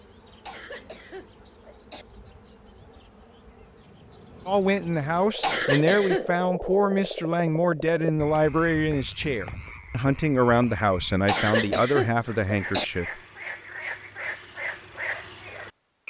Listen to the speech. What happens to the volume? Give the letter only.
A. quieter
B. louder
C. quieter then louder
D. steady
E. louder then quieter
D.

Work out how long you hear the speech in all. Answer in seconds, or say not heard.
9 s.